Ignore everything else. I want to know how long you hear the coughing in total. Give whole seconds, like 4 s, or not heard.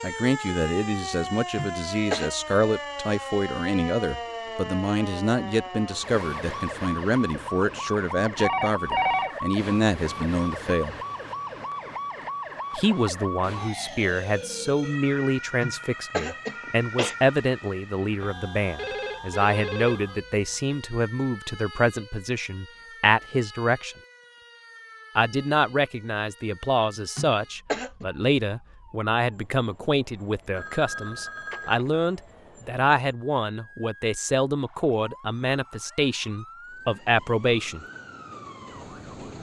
3 s.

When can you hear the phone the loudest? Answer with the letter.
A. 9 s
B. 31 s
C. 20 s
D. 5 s
A.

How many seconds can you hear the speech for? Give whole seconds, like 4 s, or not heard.
35 s.